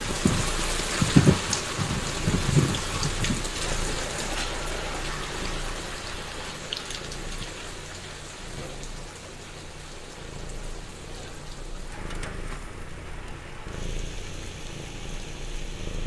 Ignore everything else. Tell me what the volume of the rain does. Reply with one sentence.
The loudness of the rain goes down.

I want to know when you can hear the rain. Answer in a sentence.
You can hear the rain from 0.0 to 16.0 s.